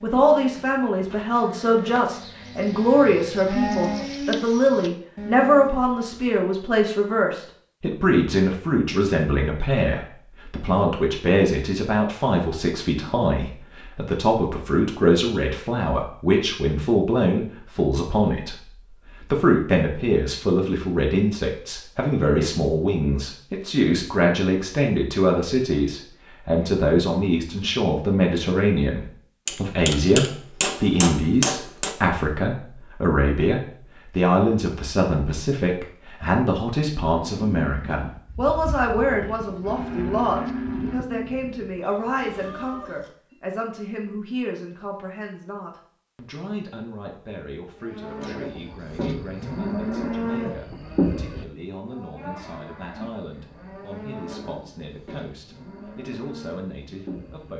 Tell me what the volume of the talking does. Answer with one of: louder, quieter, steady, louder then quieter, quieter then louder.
quieter.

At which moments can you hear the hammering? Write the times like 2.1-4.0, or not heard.
29.4-31.9.